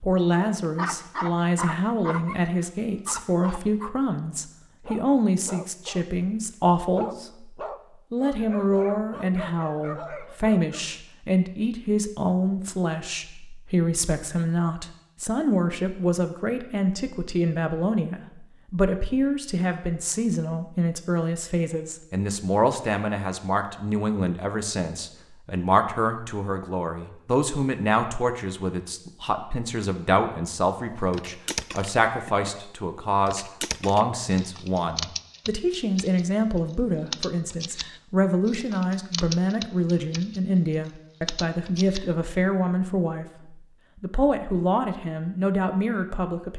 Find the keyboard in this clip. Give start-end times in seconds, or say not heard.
31.1-42.1.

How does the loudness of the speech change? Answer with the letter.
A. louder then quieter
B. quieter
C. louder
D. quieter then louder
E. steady
E.